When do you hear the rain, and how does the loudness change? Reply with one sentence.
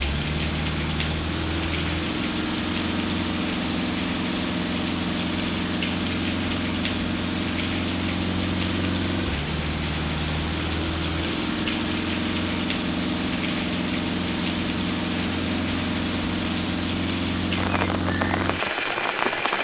The rain can be heard from 0.0 to 19.5 s, at a steady volume.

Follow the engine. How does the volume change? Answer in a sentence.
The loudness of the engine stays about the same.